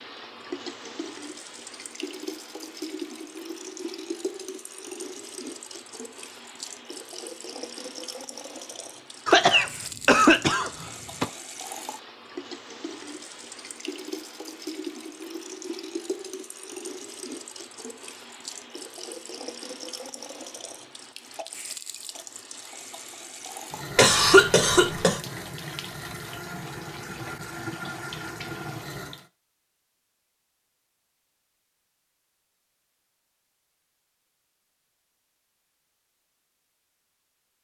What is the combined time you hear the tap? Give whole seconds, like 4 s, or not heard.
29 s.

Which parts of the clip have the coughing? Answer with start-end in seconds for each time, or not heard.
9.2-11.2, 23.9-25.2.